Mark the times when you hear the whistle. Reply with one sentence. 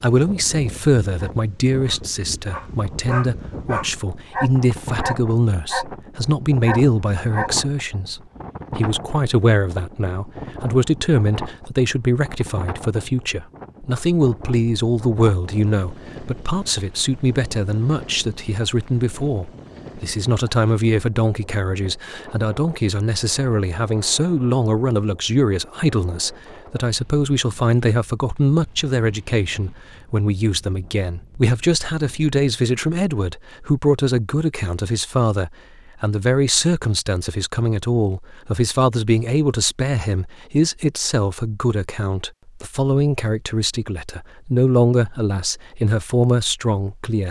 The whistle can't be heard in this clip.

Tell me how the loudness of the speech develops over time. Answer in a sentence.
The volume of the speech stays about the same.